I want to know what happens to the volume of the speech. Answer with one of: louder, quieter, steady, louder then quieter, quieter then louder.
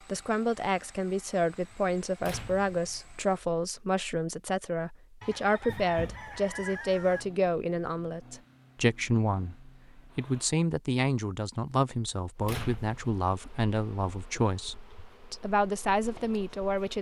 steady.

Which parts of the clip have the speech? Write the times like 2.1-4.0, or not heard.
0.1-16.9.